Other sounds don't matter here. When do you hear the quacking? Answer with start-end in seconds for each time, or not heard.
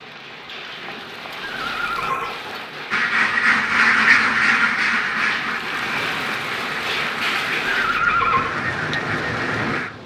2.9-9.9.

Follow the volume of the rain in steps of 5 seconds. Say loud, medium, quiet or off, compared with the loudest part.
medium, loud.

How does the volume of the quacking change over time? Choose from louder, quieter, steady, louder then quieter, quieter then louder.
quieter.